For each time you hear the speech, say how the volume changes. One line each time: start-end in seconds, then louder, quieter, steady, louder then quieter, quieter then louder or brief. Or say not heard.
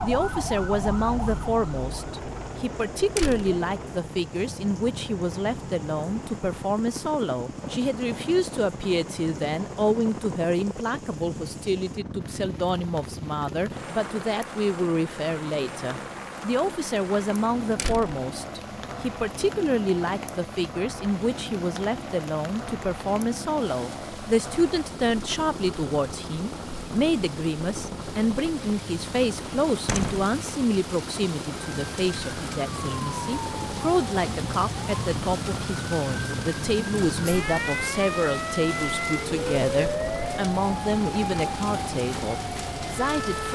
0.0-43.4 steady.